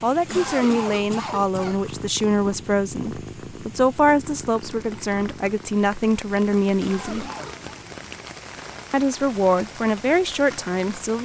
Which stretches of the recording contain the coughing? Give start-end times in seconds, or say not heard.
0.2-1.9, 6.8-7.7.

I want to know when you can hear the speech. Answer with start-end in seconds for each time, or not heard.
0.0-7.2, 8.9-11.2.